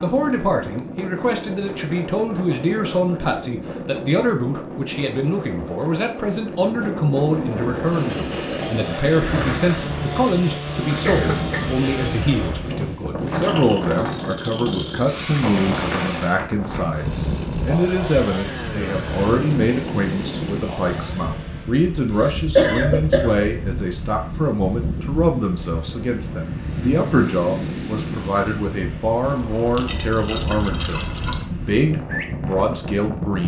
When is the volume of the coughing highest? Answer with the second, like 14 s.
23 s.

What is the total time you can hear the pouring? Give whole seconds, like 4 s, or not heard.
2 s.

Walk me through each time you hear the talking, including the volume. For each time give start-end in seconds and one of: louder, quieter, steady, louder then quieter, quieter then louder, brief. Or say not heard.
0.0-33.4 steady.